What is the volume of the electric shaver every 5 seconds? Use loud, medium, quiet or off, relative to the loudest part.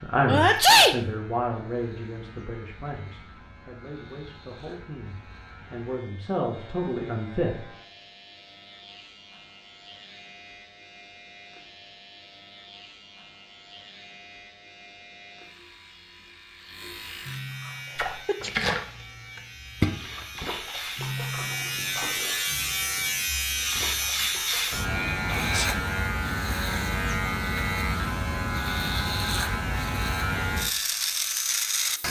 quiet, quiet, quiet, quiet, loud, loud, loud.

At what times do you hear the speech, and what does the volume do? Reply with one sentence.
The speech can be heard from 0.0 to 7.7 s, getting quieter then louder.